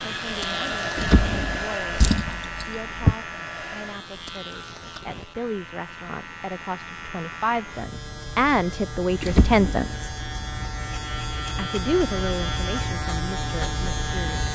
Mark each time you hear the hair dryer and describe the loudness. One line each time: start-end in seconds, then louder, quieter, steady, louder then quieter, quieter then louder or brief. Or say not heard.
0.0-4.0 quieter.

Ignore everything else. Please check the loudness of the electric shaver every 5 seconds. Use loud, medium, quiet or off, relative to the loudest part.
loud, medium, loud.